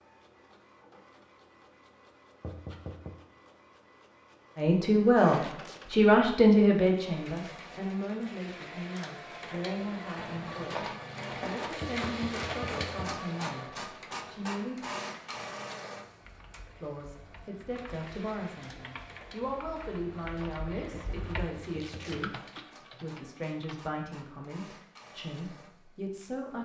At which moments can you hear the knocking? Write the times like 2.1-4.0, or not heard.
2.4-3.1, 11.8-13.2, 20.9-22.2.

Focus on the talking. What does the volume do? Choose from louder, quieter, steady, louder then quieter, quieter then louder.
quieter.